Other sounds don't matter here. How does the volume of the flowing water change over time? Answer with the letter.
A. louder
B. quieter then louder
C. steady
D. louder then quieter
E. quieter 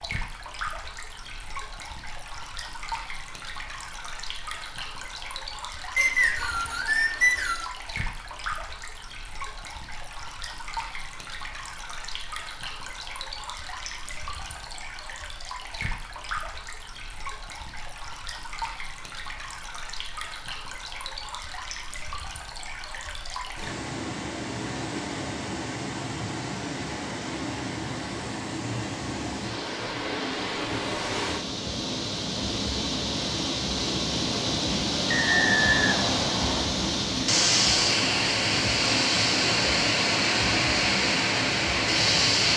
A.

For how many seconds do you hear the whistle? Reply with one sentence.
You can hear the whistle for 3 seconds altogether.